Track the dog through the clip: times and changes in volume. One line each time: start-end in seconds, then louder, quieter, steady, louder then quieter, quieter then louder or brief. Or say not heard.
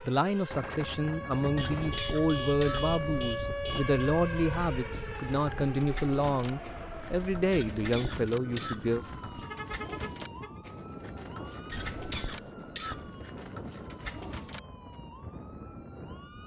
not heard.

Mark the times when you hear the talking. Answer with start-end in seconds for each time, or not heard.
0.0-9.1.